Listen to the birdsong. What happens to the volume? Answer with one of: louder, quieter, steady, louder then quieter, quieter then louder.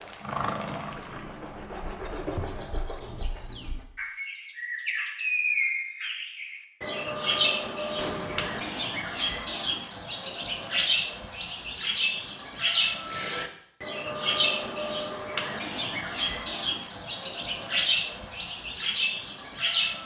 louder.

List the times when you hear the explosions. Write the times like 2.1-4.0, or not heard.
8.0-8.8.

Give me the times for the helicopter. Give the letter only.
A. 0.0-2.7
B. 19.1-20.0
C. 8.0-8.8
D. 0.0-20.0
A.